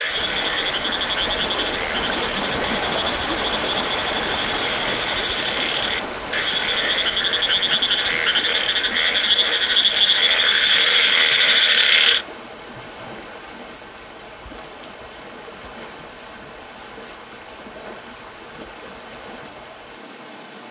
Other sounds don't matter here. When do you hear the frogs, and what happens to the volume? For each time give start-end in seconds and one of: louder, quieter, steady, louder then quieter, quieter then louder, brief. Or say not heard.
0.0-12.2 louder.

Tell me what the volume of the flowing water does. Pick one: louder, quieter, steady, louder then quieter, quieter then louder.
quieter.